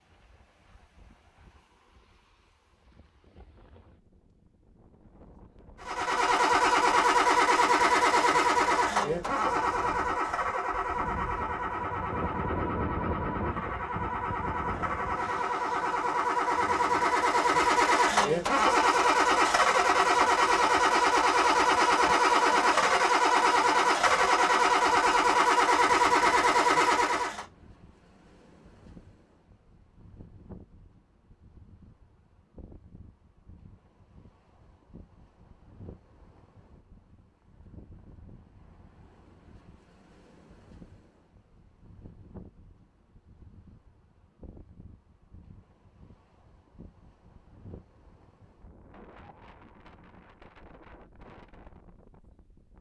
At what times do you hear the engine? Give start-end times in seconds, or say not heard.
5.8-27.4.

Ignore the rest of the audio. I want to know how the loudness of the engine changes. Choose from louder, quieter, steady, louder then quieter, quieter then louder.
quieter then louder.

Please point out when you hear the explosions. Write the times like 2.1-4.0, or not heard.
not heard.